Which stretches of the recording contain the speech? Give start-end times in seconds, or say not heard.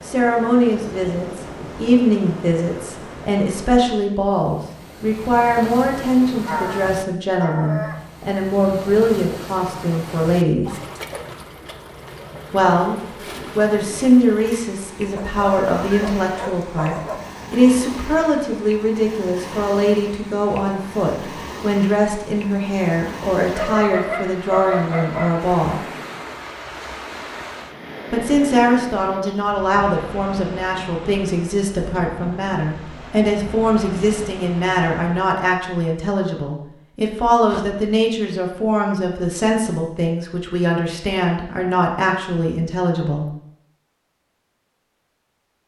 0.1-10.8, 12.5-12.9, 13.6-25.8, 28.1-43.2.